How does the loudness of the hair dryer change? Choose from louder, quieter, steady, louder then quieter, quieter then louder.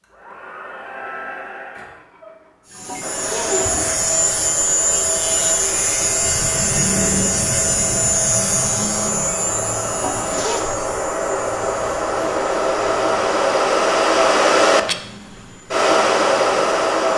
louder.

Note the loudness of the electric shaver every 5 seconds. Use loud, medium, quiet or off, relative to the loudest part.
loud, loud, quiet, quiet.